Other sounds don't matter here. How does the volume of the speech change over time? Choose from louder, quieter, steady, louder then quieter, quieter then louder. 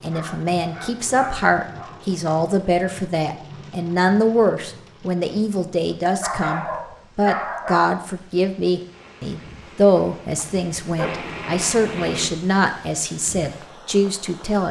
steady.